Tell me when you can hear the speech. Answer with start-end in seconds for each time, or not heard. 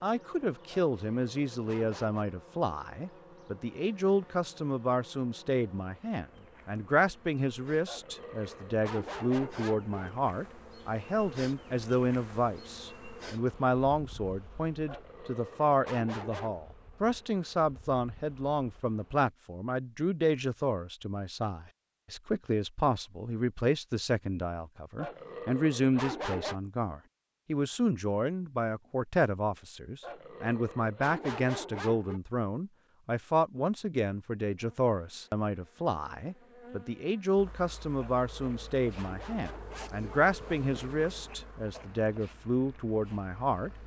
0.0-43.7.